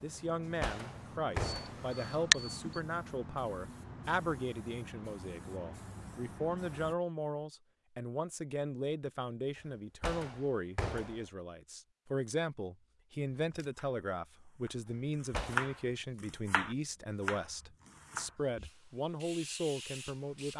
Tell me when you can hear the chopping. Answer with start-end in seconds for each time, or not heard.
13.3-14.8, 15.4-18.3.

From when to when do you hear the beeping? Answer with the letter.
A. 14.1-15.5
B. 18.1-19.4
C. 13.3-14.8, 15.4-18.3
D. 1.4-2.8
D.